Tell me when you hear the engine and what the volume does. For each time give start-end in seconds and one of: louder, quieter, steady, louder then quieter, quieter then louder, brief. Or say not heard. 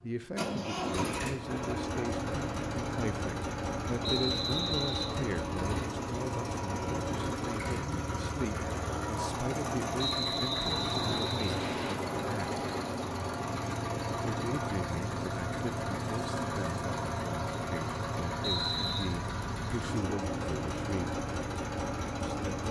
0.0-22.6 steady.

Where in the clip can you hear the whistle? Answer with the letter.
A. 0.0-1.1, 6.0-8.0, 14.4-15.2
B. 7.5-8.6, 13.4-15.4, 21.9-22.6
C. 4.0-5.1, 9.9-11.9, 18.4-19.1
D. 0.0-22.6
C.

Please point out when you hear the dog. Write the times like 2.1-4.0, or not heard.
not heard.